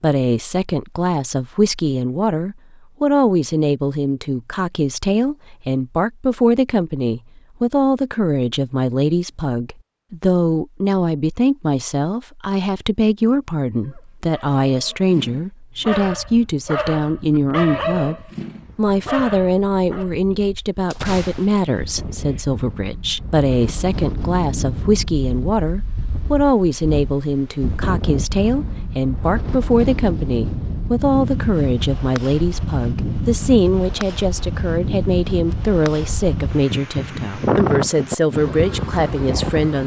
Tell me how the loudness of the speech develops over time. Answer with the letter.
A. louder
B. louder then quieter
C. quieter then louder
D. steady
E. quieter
D.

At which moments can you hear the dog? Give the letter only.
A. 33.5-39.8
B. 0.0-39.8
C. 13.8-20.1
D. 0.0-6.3
C.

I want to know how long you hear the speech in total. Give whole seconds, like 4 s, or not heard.
40 s.